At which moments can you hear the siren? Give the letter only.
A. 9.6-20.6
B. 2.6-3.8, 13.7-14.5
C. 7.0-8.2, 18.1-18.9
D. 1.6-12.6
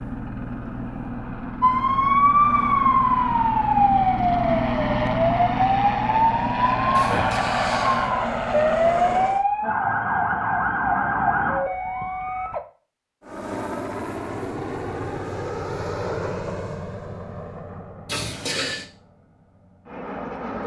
D.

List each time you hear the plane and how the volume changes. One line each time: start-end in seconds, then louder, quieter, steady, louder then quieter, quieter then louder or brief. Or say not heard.
0.0-9.4 louder
13.2-20.6 quieter.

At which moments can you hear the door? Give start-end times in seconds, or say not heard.
7.0-8.2, 18.1-18.9.